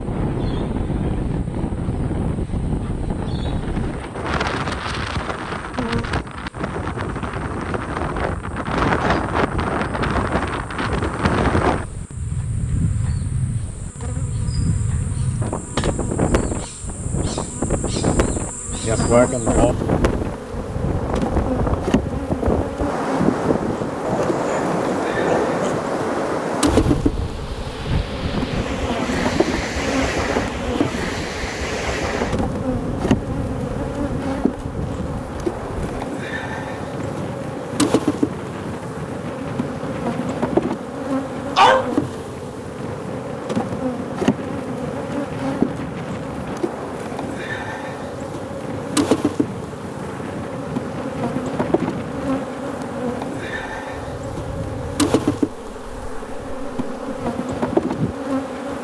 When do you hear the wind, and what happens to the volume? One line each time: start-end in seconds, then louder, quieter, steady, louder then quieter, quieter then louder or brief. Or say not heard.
0.0-58.7 quieter.